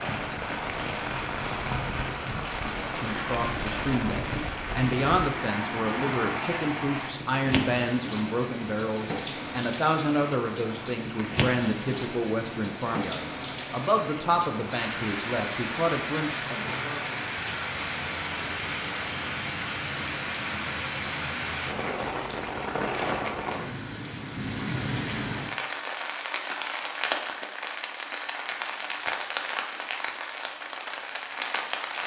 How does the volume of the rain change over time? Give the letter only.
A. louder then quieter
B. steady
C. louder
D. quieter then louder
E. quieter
B.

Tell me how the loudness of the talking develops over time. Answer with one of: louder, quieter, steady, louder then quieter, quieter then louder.
steady.